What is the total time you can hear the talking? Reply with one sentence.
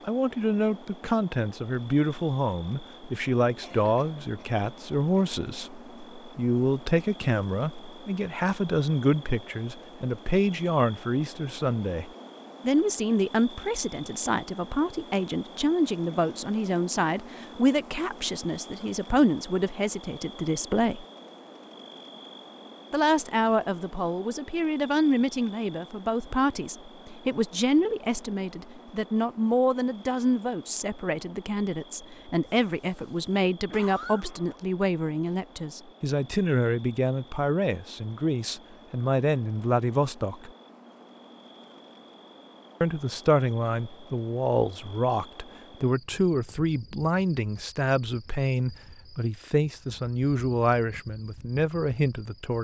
You can hear the talking for 48 seconds altogether.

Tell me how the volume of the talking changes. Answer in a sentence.
The volume of the talking stays about the same.